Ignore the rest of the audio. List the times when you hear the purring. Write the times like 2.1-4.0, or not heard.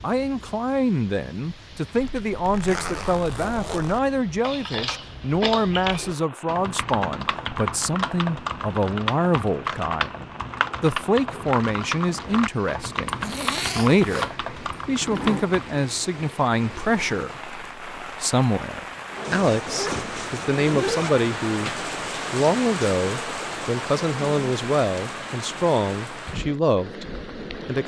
not heard.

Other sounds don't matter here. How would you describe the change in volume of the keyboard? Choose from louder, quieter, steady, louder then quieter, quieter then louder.
steady.